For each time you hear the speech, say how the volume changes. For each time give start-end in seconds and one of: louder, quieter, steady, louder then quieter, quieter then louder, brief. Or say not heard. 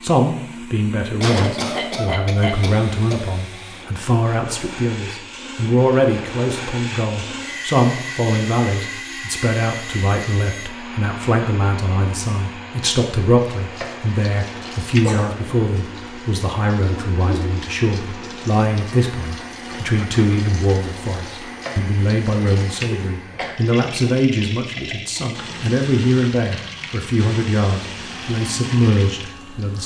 0.0-29.8 steady.